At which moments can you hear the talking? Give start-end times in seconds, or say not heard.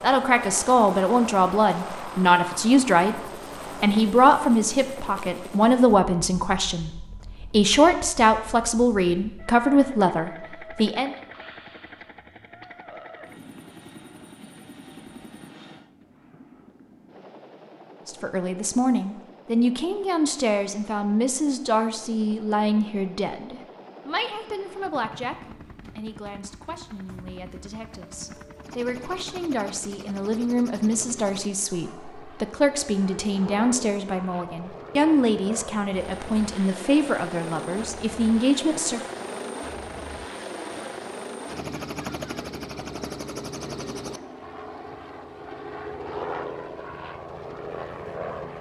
0.0-3.2, 3.8-11.1, 18.1-39.0.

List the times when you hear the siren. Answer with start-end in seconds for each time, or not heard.
not heard.